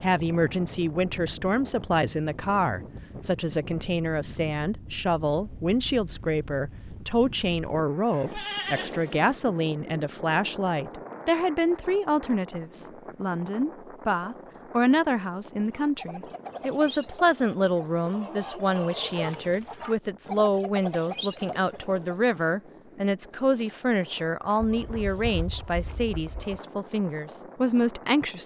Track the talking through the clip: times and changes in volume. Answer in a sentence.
You can hear the talking from 0.0 to 28.4 s, at a steady volume.